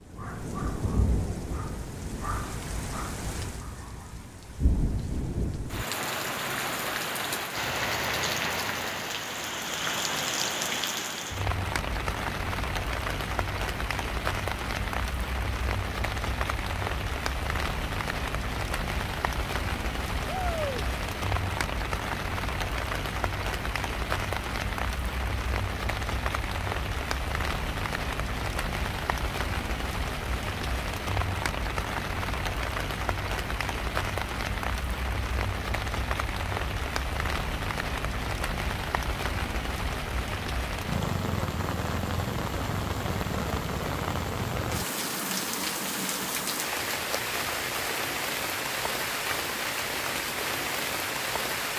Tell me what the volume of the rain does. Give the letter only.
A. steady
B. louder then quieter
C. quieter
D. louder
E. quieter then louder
A.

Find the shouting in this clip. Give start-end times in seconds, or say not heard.
20.2-20.9.